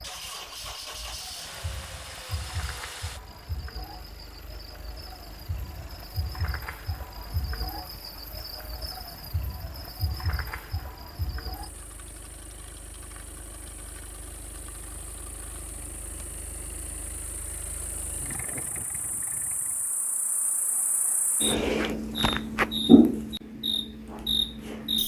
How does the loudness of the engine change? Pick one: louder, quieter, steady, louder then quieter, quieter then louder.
quieter then louder.